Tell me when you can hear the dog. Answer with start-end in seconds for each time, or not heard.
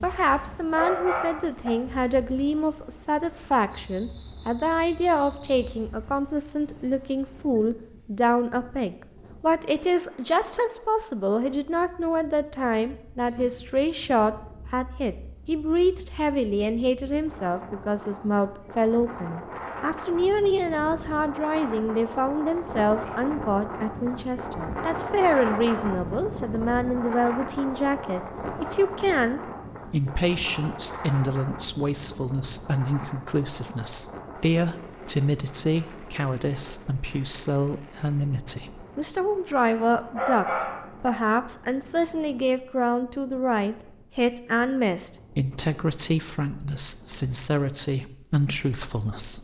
0.2-1.7, 39.6-41.1.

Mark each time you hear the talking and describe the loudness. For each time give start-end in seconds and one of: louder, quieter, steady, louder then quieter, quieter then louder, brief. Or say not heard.
0.0-49.4 steady.